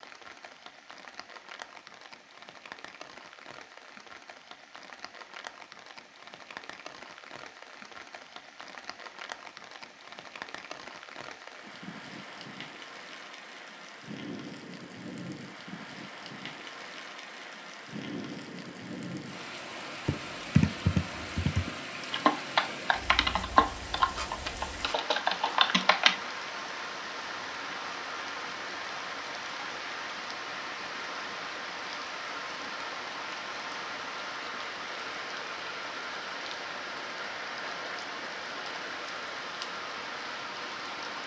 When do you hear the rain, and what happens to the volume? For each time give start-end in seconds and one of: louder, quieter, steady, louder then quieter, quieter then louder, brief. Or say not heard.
0.0-41.2 louder.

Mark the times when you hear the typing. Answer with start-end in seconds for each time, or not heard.
20.1-26.1.